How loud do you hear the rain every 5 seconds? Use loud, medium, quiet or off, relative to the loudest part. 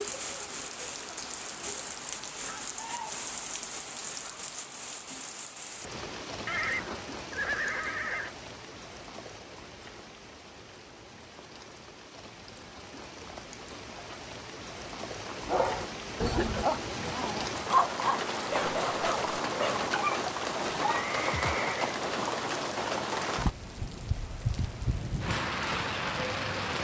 medium, medium, quiet, loud, loud, loud.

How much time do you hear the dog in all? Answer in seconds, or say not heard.
6 s.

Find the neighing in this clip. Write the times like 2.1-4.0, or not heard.
6.5-8.3, 20.9-22.0.